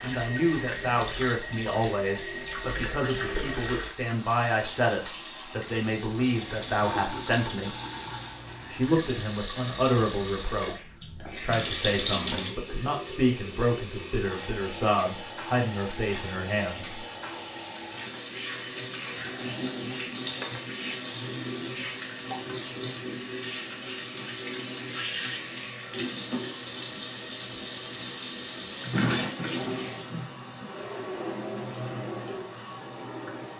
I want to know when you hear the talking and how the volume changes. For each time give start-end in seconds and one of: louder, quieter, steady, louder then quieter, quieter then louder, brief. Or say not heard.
0.0-7.8 steady
8.7-17.1 steady.